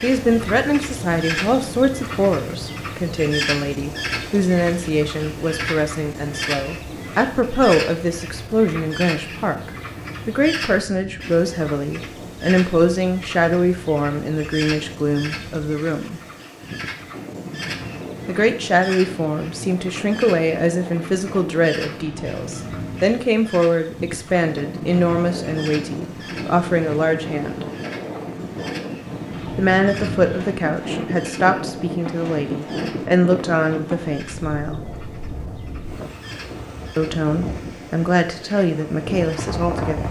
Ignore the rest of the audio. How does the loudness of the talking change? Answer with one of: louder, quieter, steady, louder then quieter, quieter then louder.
steady.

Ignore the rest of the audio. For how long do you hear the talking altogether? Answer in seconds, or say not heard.
34 s.